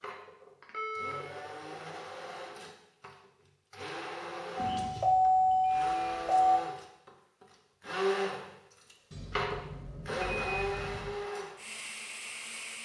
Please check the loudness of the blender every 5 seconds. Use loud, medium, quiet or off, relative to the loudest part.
medium, loud, loud.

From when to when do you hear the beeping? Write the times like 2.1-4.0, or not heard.
0.6-1.2, 4.5-6.6, 9.1-11.1.